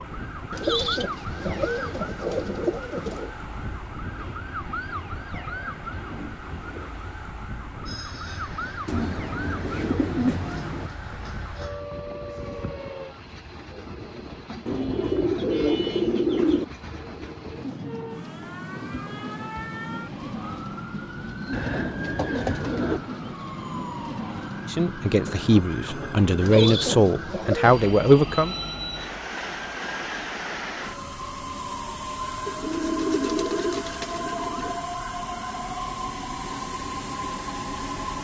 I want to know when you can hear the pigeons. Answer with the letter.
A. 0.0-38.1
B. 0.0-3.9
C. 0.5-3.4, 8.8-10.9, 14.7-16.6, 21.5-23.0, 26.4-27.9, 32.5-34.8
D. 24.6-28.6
C.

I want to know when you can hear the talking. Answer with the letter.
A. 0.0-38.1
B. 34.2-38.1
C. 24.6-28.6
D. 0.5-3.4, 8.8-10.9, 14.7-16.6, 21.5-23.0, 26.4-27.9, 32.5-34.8
C.